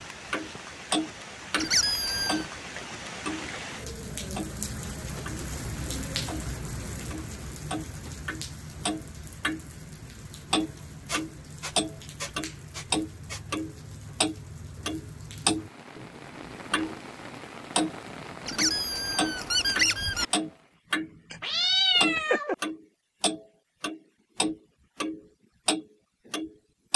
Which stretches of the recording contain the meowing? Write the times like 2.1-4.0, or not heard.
21.3-22.6.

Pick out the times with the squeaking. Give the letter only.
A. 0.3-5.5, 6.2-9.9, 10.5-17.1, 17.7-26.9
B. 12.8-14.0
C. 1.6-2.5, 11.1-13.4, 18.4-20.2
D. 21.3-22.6
C.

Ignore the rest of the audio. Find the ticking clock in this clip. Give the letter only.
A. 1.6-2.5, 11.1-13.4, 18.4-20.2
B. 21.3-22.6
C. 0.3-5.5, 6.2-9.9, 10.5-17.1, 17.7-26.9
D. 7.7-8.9
C.